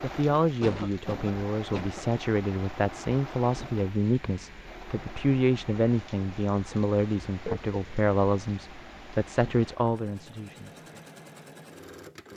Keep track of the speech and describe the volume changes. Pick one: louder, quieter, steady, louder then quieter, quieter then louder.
steady.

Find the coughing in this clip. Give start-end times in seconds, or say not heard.
0.6-2.4, 7.2-7.8.